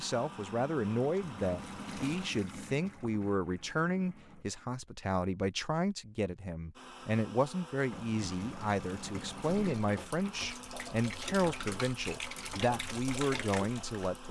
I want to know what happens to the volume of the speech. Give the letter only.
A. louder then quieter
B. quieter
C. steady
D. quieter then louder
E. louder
C.